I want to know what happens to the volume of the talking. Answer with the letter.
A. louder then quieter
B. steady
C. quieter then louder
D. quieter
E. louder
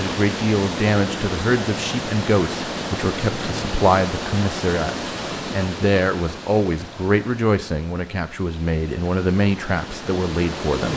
B.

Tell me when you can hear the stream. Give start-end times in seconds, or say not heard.
0.0-10.9.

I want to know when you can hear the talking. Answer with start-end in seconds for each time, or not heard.
0.0-10.9.